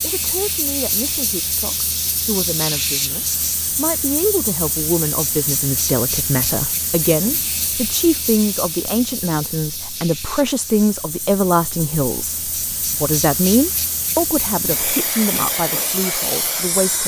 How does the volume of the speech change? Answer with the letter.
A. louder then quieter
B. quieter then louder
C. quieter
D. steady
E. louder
E.